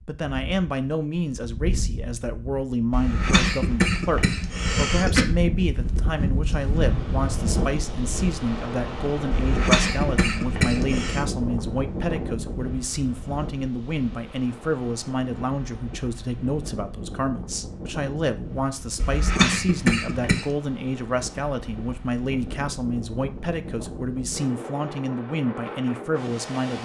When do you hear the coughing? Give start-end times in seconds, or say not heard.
2.9-5.2, 9.3-11.2, 18.9-20.5.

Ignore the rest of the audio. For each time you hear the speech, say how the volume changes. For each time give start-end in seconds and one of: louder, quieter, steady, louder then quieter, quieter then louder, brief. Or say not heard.
0.1-26.7 steady.